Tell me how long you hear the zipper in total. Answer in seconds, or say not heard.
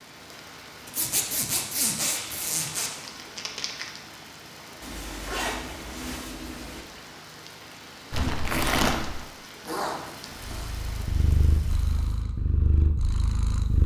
5 s.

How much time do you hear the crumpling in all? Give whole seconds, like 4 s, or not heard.
3 s.